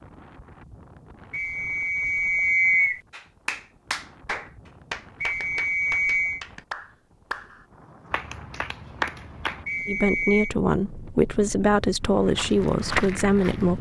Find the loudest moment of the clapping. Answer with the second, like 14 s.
9 s.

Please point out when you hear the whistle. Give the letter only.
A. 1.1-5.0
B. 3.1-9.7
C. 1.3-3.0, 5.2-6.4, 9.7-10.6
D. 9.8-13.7
C.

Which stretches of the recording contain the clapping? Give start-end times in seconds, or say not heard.
3.1-9.7.